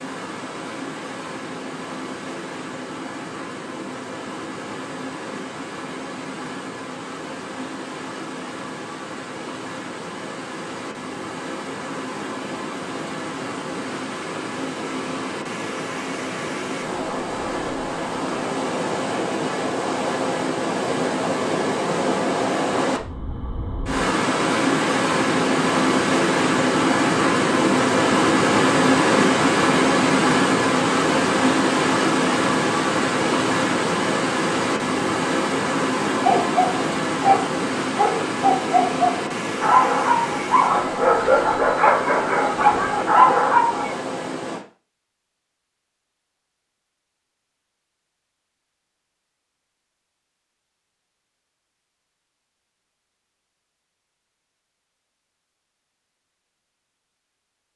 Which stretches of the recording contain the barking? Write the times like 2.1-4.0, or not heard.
36.2-44.0.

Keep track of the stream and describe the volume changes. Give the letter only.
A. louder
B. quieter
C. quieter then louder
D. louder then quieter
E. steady
D.